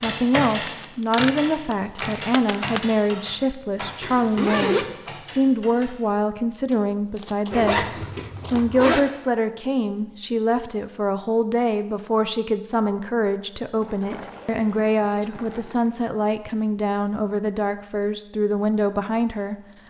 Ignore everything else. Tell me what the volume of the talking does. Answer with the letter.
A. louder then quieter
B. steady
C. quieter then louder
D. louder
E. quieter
B.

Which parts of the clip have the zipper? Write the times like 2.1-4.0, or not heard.
4.0-5.0, 7.5-9.0, 14.1-16.1.